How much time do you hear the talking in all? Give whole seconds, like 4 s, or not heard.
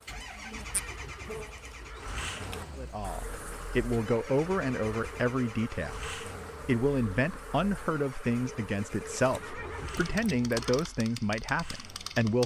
10 s.